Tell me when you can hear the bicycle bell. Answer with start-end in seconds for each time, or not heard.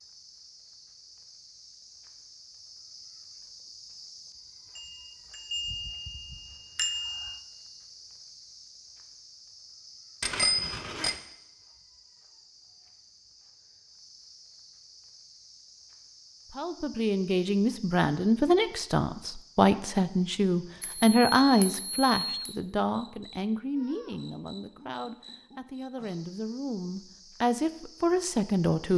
4.8-7.4, 10.2-11.2, 20.8-22.6.